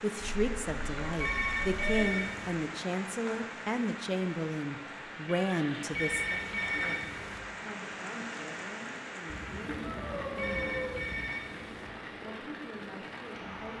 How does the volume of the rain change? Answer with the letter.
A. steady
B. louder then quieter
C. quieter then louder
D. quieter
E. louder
A.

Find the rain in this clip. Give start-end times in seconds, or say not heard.
0.0-13.7.